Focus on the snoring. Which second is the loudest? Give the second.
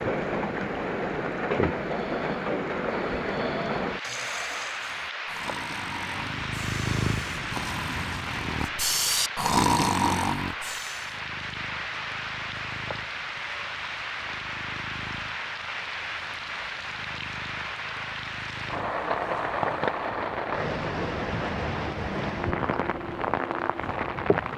10 s.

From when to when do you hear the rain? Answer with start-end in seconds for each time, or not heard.
0.0-24.5.